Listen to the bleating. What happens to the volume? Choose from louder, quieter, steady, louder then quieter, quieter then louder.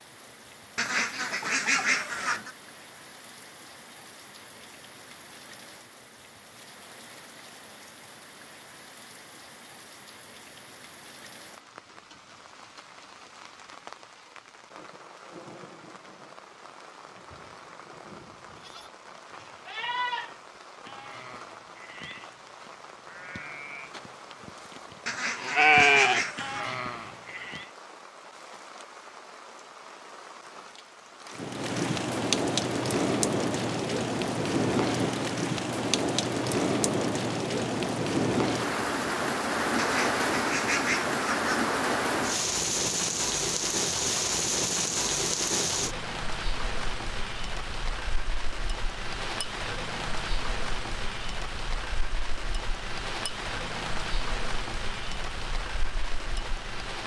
quieter then louder.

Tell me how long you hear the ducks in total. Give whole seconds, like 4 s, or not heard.
5 s.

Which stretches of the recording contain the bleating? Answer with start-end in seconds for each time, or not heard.
18.6-27.6.